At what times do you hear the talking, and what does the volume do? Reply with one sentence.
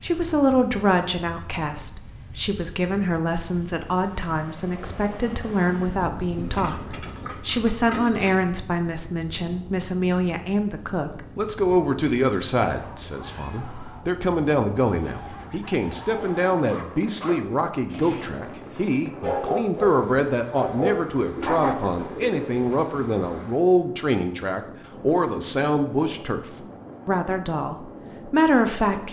You can hear the talking from 0.0 to 26.4 s, at a steady volume; and briefly from 27.1 to 29.0 s.